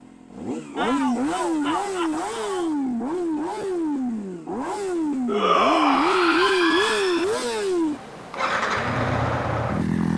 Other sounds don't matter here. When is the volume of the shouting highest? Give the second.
6 s.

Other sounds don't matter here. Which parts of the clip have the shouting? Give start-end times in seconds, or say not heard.
0.8-2.8, 5.2-7.2.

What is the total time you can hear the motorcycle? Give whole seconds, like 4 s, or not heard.
10 s.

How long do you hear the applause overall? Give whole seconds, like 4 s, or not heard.
not heard.